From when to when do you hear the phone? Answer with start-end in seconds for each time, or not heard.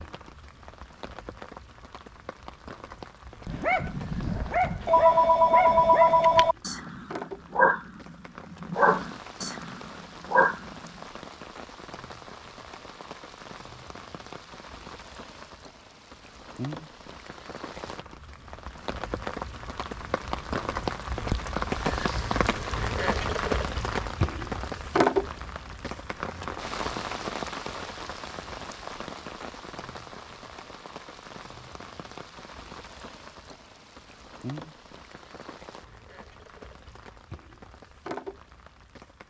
4.8-6.5.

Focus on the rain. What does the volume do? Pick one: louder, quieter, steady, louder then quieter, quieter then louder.
louder then quieter.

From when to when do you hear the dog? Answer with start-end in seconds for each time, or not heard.
3.5-10.9.